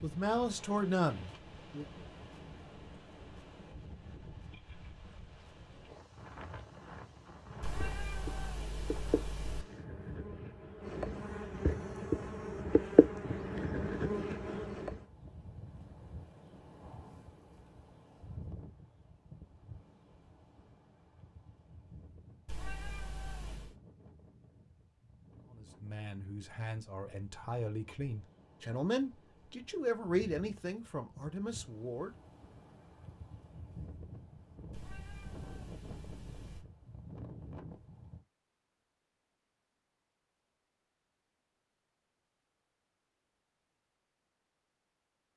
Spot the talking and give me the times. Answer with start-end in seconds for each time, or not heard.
0.0-1.9, 25.5-32.1.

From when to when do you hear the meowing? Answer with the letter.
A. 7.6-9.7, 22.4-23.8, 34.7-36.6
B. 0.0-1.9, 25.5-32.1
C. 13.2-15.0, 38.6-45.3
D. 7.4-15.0
A.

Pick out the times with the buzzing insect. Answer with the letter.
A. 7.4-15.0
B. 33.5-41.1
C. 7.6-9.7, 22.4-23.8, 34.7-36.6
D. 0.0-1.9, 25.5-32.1
A.